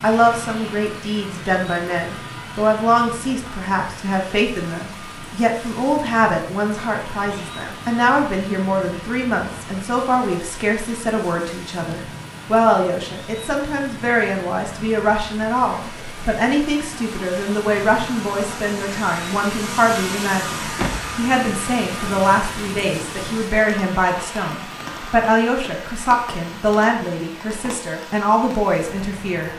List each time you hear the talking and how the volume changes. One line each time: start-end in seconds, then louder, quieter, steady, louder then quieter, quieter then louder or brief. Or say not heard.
0.0-29.5 steady.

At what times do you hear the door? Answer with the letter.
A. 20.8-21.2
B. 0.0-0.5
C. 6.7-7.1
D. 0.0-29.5
A.